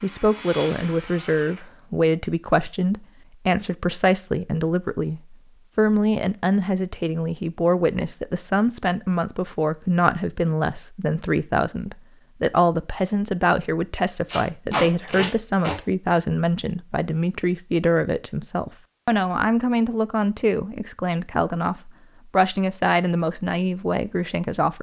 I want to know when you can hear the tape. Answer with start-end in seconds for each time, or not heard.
14.2-15.8.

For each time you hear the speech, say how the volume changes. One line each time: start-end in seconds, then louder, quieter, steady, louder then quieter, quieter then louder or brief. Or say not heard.
0.0-24.7 steady.